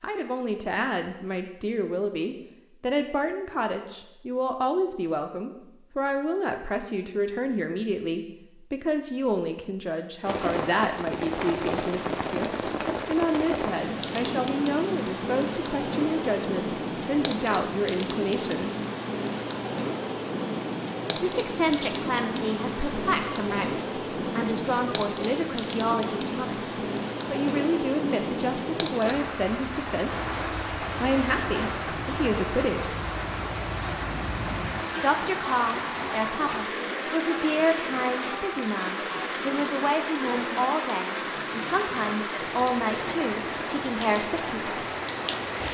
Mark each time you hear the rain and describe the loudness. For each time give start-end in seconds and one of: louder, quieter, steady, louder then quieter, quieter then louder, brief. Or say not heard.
10.2-45.6 steady.